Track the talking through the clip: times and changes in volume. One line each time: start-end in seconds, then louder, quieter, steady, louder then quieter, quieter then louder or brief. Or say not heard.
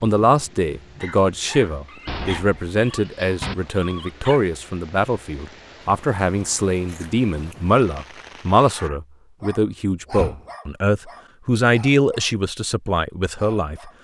0.0-13.9 steady.